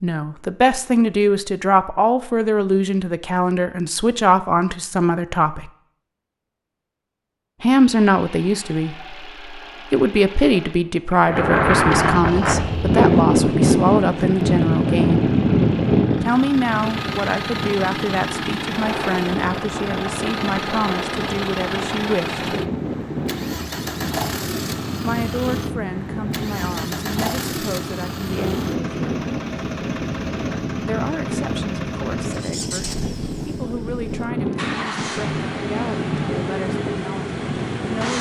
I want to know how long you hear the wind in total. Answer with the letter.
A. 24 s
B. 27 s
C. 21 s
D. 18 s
B.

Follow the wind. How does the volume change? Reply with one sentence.
The loudness of the wind goes down.